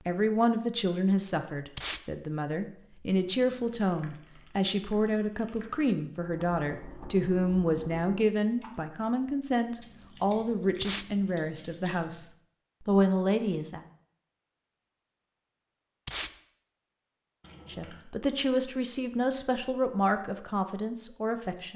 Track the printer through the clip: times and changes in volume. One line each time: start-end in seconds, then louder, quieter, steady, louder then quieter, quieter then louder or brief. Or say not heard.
not heard.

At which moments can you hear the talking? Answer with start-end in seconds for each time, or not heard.
0.1-13.8, 17.7-21.7.